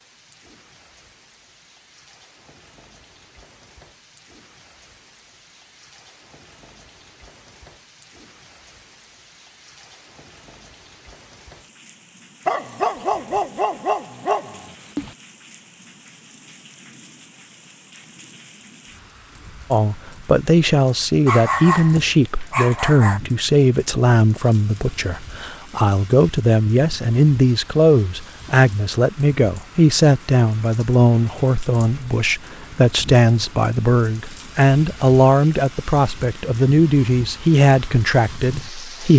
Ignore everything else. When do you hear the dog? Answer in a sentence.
The dog can be heard from 12.4 to 15.2 s and from 21.2 to 23.2 s.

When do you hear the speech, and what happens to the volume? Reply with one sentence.
You can hear the speech from 19.7 to 39.1 s, at a steady volume.